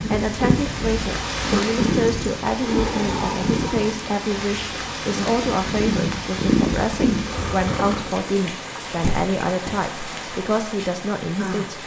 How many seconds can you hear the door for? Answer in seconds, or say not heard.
3 s.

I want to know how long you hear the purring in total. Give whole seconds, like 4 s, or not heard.
7 s.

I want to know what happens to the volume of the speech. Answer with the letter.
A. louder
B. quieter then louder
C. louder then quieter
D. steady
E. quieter
D.